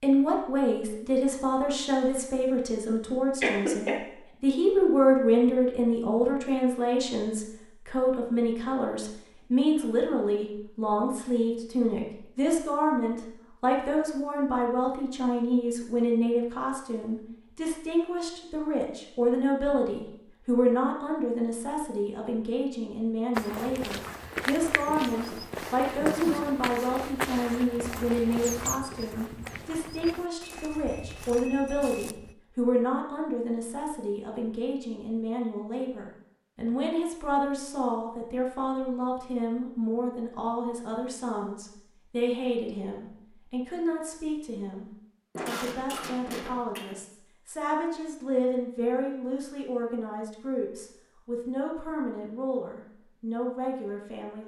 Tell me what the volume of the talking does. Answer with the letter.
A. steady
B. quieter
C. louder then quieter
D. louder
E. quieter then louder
B.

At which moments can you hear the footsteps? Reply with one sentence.
You can hear the footsteps from 23.4 to 32.4 s.